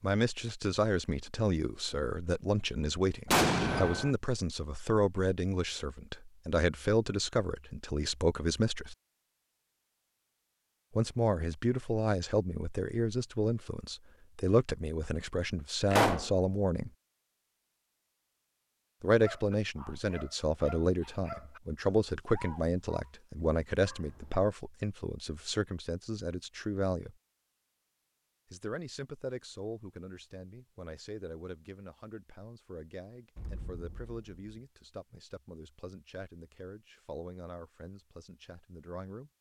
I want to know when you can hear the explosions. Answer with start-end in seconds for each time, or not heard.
3.3-4.1, 15.9-16.3, 33.4-34.4.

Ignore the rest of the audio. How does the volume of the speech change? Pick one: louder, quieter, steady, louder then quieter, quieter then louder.
quieter.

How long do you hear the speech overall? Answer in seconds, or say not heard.
34 s.